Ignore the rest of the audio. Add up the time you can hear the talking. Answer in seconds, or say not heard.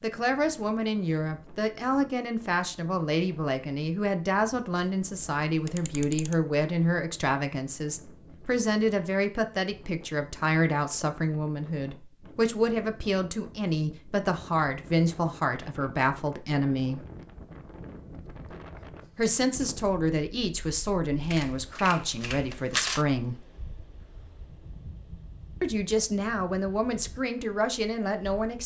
24 s.